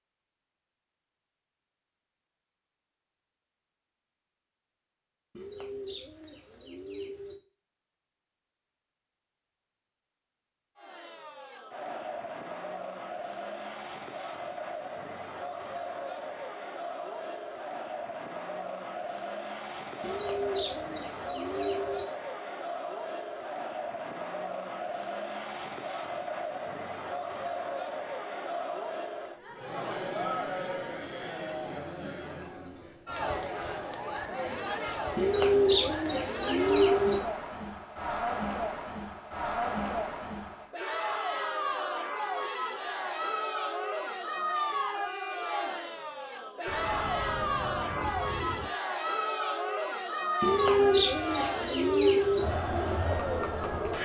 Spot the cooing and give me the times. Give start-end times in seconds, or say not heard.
5.3-7.3, 20.0-22.1, 35.1-37.2, 50.4-52.5.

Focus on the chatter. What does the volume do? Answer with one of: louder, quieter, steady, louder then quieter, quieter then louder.
louder.